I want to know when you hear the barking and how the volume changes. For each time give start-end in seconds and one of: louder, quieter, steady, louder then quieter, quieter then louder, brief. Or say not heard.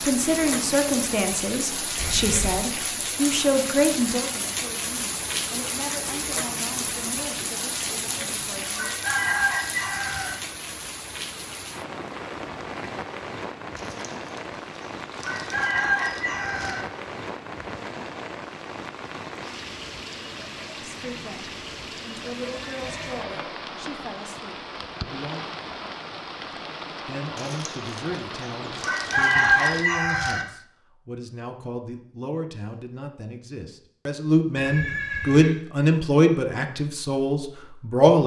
not heard.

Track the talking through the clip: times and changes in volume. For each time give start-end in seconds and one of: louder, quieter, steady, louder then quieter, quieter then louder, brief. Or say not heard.
0.0-8.9 quieter
20.9-25.5 louder then quieter
27.1-38.2 louder.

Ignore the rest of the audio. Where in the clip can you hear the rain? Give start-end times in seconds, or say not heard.
0.0-29.9.